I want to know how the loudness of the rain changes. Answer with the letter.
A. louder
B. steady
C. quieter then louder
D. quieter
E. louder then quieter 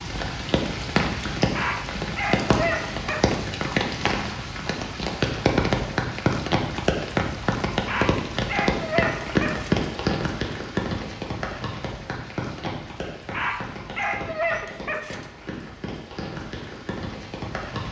D.